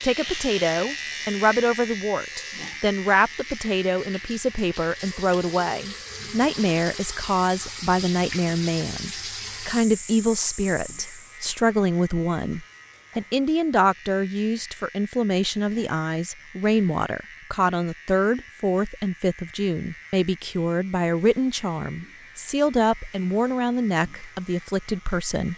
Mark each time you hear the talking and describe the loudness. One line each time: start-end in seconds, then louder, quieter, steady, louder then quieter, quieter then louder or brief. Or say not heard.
0.0-25.5 steady.